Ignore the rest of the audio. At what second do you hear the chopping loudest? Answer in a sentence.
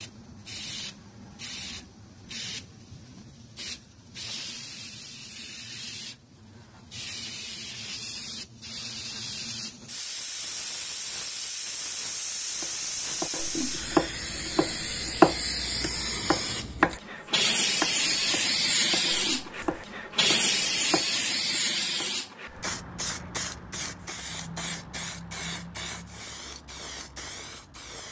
The volume of the chopping peaks at 15 seconds.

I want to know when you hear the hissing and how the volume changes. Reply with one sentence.
The hissing can be heard from 0.0 to 28.0 s, getting louder then quieter.